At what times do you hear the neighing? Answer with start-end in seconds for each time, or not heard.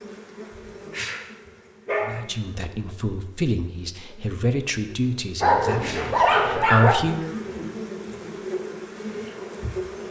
not heard.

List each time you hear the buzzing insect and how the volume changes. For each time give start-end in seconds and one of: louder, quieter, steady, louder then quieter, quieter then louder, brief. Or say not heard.
0.0-10.0 quieter then louder.